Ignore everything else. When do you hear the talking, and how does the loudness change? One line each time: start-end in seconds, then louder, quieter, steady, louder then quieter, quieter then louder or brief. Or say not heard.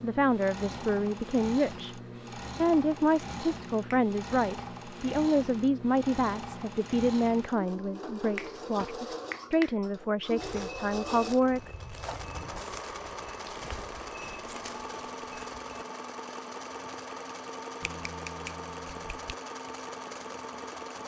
0.0-11.7 steady.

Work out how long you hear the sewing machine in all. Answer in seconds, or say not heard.
21 s.